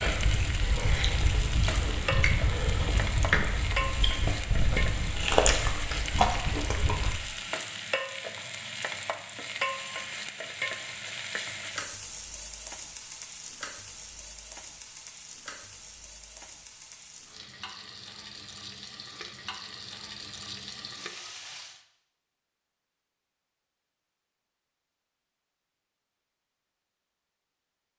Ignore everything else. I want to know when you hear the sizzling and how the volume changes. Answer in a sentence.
The sizzling can be heard from 0.0 to 21.9 s, getting quieter.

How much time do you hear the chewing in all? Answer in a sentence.
You can hear the chewing for 7 seconds altogether.